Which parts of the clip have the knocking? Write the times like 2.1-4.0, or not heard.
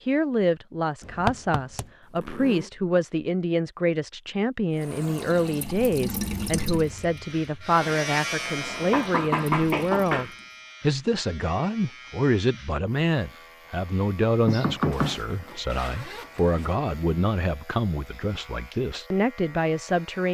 1.0-1.9, 8.9-10.3, 14.4-15.2.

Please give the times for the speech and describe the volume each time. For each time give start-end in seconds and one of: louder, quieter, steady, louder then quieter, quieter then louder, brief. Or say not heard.
0.1-20.2 steady.